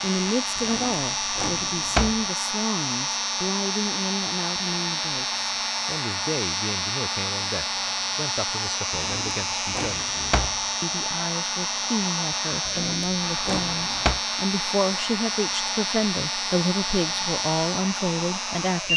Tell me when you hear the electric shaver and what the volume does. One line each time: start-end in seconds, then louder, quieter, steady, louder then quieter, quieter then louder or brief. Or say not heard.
0.0-18.9 steady.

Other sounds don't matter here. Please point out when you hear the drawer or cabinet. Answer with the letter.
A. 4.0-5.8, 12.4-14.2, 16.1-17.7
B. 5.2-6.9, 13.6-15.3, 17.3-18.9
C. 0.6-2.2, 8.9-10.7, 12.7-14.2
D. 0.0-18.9
C.